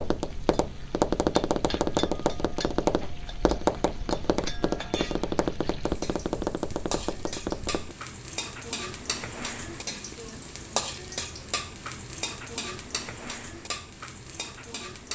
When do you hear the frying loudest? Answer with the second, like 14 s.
11 s.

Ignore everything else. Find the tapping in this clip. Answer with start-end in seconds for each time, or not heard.
0.0-8.0.